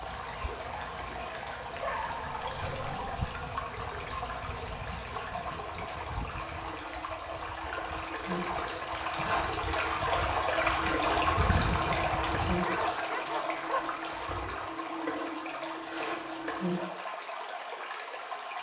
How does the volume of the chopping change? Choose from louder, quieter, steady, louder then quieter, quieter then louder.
louder.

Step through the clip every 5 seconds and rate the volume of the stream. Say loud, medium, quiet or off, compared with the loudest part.
medium, medium, loud, medium.